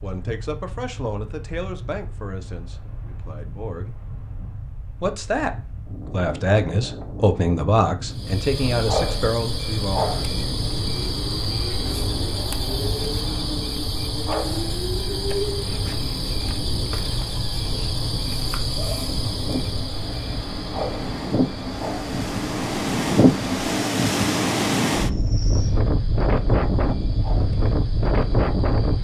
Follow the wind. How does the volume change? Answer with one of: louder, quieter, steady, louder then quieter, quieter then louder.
louder.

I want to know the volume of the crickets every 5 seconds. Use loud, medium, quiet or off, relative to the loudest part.
off, loud, loud, loud, medium, quiet.